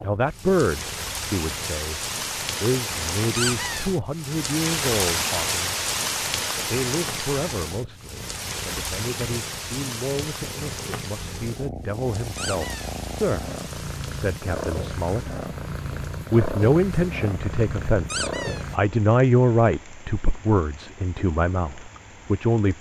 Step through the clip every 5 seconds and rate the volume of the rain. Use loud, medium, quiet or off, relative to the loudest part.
loud, loud, medium, quiet, quiet.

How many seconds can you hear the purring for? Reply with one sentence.
You can hear the purring for 19 seconds altogether.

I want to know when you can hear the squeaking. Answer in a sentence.
The squeaking can be heard from 3.4 to 3.9 s, from 12.3 to 12.9 s and from 18.1 to 18.6 s.